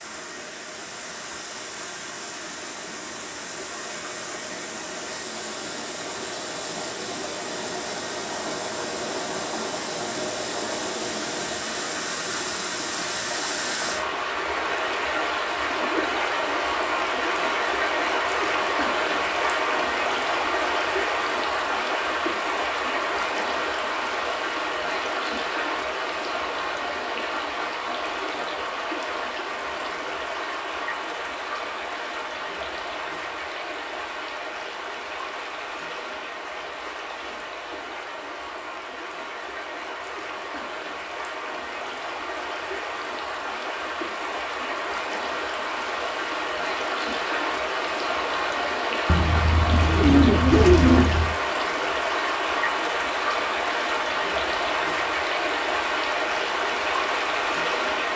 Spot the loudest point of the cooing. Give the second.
51 s.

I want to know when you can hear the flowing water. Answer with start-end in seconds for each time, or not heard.
0.0-58.1.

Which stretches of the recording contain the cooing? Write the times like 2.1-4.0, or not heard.
49.0-51.4.